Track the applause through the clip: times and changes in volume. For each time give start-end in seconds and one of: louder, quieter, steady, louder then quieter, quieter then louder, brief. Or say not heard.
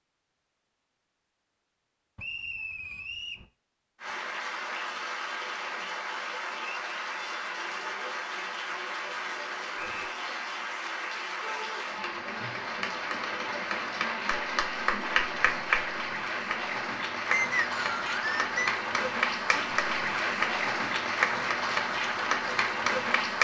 4.0-23.3 louder.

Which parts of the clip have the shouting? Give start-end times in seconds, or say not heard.
11.4-11.8.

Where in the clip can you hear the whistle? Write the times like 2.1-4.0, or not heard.
2.1-3.5, 9.8-10.2, 17.3-18.5.